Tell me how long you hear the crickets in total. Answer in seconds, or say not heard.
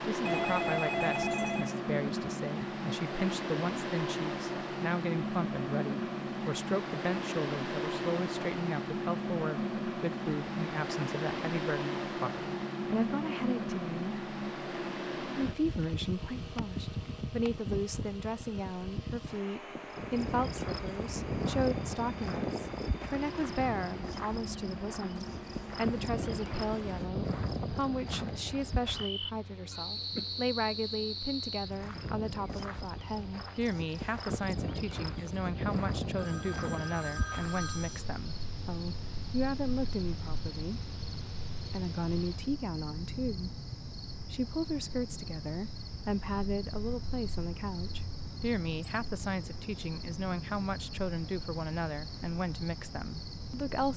34 s.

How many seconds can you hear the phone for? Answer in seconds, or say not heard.
3 s.